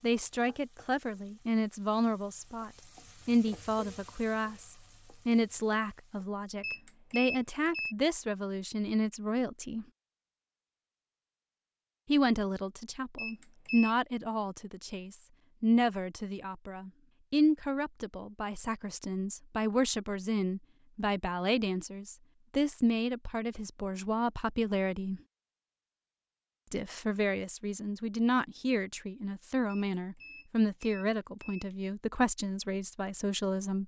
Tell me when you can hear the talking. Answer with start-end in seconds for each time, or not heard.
0.0-9.8, 12.1-25.2, 26.7-33.8.